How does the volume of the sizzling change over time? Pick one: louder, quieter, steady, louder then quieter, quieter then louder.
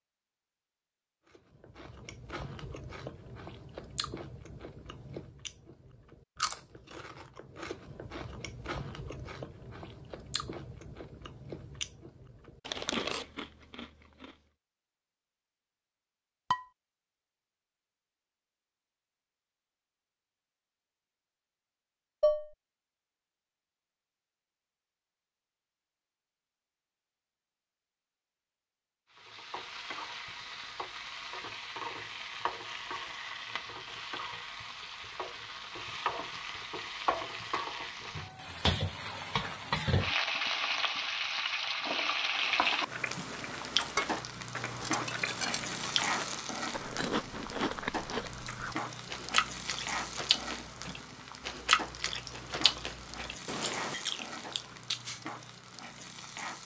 louder then quieter.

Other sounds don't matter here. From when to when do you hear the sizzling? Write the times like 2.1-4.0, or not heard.
29.1-56.6.